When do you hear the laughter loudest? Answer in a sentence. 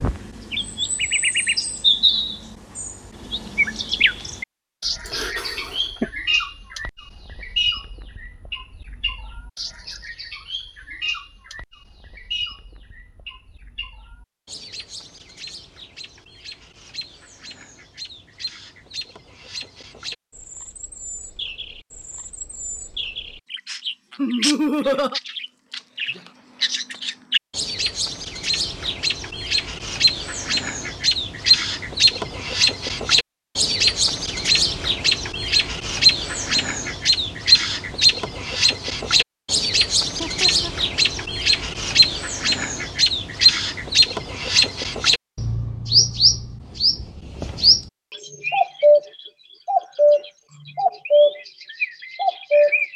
The volume of the laughter peaks at 25 seconds.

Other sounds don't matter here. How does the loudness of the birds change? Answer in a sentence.
The volume of the birds goes down, then up.